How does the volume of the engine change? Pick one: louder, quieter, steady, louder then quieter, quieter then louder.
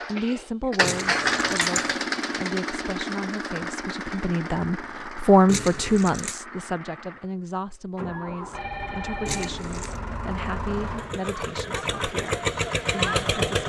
quieter then louder.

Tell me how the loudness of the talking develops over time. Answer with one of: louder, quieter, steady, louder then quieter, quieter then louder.
louder then quieter.